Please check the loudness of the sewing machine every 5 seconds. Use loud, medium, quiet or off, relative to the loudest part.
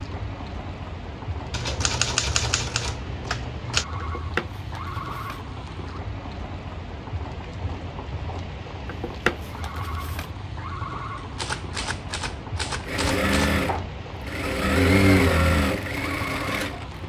off, off, loud, loud.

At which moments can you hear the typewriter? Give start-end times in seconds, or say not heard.
1.5-3.9, 11.3-13.6.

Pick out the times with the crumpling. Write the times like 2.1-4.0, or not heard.
4.0-5.4, 8.8-10.2.